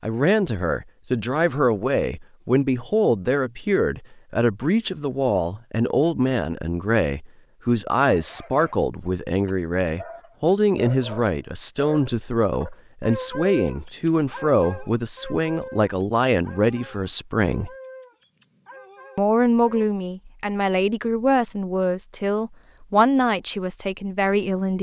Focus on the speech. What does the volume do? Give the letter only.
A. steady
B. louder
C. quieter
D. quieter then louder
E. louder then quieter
A.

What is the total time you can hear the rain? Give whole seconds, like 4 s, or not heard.
not heard.